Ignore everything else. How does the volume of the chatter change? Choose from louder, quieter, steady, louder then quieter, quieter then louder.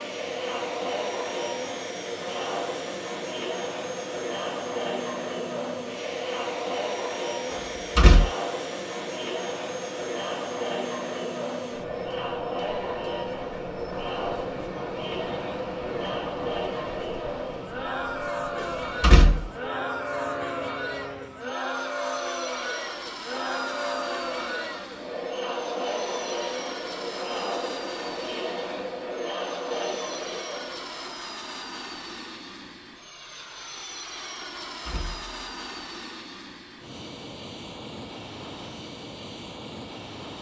steady.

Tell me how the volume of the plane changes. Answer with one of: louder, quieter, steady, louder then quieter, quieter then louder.
steady.